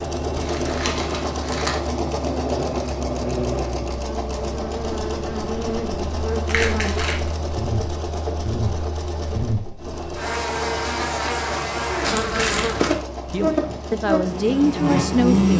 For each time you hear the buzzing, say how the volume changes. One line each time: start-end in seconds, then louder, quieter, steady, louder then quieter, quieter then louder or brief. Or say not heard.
0.0-15.5 louder.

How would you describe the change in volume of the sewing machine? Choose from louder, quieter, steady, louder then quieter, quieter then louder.
quieter.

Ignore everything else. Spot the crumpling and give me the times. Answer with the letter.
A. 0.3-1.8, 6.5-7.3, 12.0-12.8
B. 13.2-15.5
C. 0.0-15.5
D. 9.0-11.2
A.